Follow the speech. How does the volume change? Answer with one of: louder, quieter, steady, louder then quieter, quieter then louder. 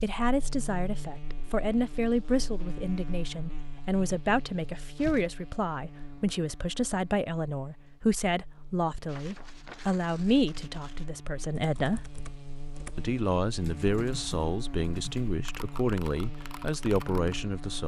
steady.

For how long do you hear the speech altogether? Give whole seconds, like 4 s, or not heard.
17 s.